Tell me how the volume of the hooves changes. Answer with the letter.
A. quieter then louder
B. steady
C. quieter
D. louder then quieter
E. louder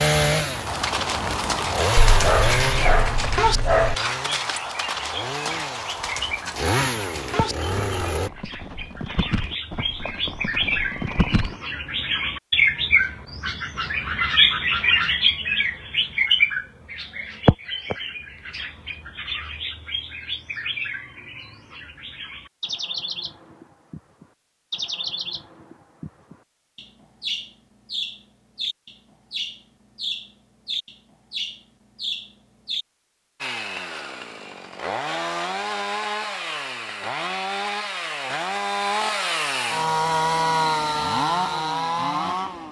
C.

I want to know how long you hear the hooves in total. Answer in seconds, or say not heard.
11 s.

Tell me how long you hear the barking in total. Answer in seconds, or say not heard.
2 s.